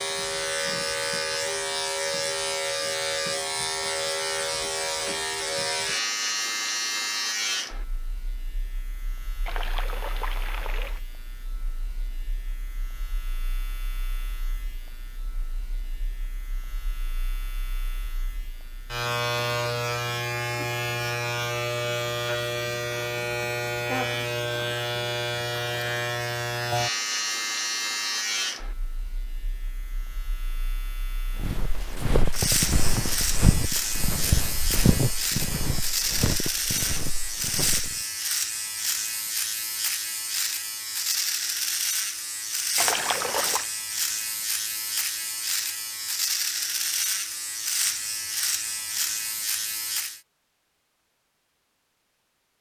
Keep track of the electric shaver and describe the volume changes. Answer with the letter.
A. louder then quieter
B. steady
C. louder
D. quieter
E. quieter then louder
E.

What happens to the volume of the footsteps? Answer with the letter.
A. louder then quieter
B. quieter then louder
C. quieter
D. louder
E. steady
C.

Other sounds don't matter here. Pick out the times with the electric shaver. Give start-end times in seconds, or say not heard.
0.0-50.2.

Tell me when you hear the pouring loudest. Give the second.
43 s.